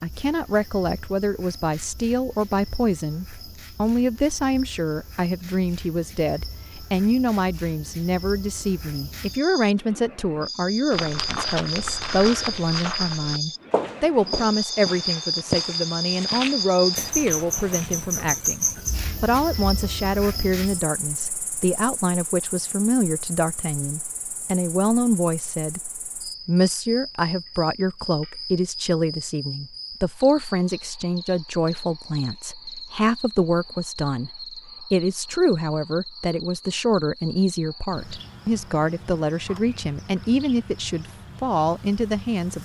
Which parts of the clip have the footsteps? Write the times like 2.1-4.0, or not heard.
10.9-18.2.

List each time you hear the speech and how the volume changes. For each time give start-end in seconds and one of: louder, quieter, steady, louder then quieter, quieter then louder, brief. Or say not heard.
0.0-25.8 steady
26.4-42.5 steady.